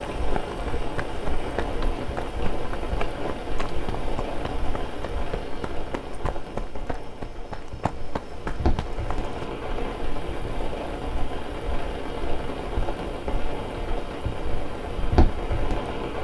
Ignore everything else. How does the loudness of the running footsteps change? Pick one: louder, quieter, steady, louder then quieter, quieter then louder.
quieter then louder.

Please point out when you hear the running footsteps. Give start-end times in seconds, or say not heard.
0.0-9.5.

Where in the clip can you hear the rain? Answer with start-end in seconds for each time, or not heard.
0.0-16.1.